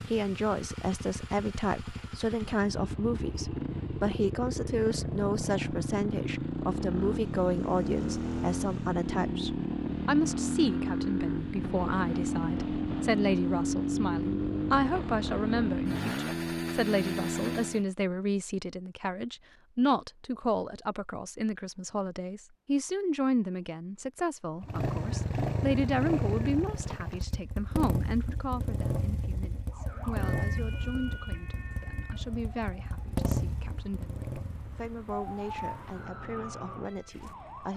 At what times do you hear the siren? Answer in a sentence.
You can hear the siren from 29.7 to 37.7 s.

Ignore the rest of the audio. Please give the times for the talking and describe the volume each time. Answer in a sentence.
You can hear the talking from 0.1 to 37.7 s, getting quieter.